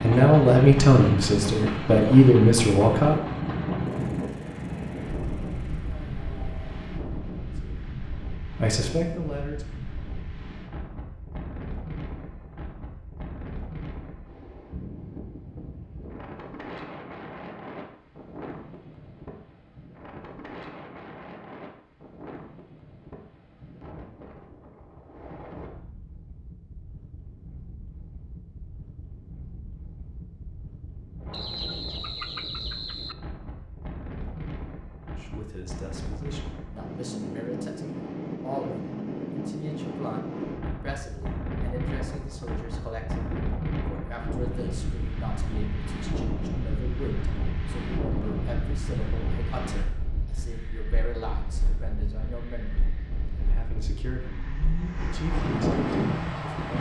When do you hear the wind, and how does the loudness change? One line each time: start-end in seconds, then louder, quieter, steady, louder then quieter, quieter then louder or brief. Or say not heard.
0.0-56.7 quieter then louder.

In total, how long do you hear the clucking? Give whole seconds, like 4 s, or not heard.
2 s.